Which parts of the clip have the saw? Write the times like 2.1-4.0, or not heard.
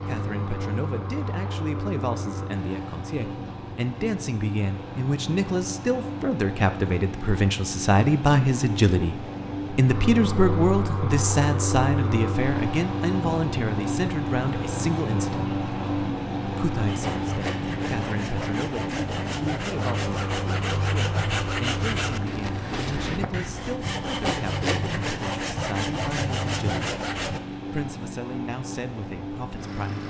16.9-27.4.